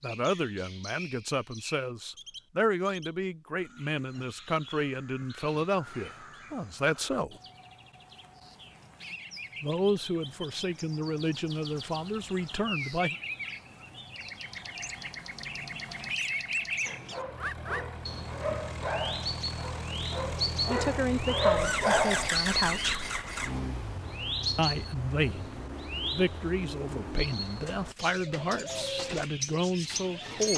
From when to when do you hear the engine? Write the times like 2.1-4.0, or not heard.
17.2-30.5.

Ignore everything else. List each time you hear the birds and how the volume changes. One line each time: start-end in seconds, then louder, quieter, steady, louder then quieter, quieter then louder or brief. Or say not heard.
0.0-30.5 louder.